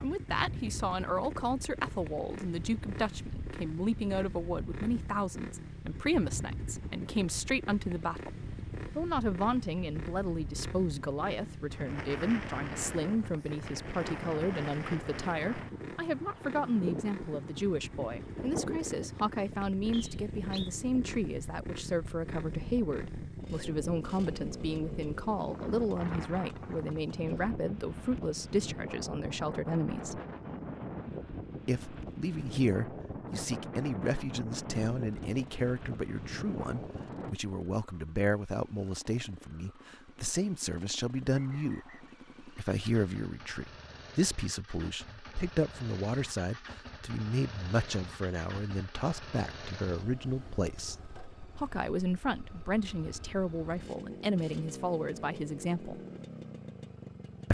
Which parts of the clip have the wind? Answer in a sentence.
The wind can be heard from 0.0 to 37.4 s.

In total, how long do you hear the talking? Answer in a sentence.
The talking can be heard for 53 seconds in total.